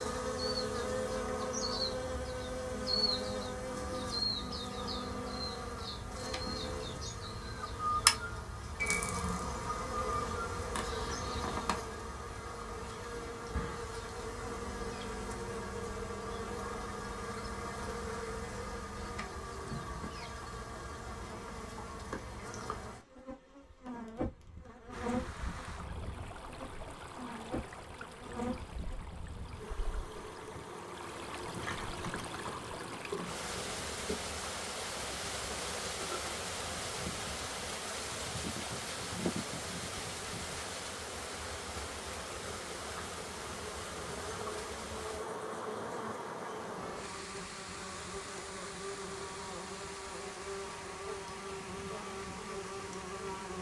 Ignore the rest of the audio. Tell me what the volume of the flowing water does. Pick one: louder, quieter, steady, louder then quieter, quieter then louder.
louder then quieter.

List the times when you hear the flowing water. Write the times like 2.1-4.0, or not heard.
24.9-53.5.